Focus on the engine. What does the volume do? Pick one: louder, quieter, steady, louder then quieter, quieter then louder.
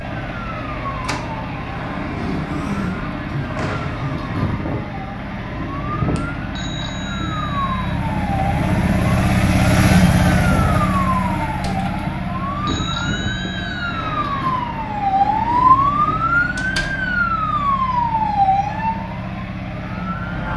louder then quieter.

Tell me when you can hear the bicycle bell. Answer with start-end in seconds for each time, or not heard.
6.5-8.0, 12.7-14.3.